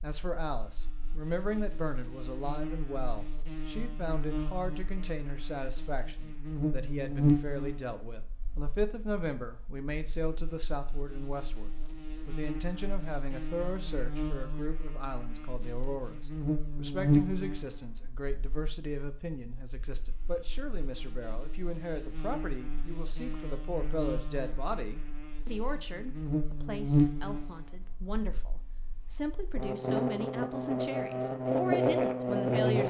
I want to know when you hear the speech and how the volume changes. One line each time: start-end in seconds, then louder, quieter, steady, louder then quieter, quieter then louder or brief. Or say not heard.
0.0-32.8 steady.